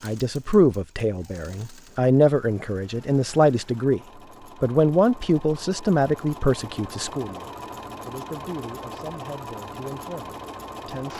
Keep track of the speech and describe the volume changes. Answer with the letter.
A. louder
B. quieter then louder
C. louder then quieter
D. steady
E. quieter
E.